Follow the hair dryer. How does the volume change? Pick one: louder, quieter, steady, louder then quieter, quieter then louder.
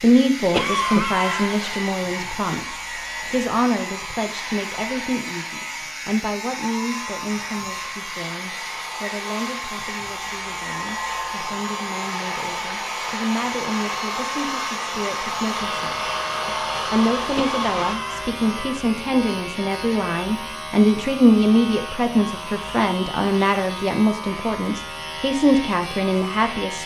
louder.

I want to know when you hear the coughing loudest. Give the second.
1 s.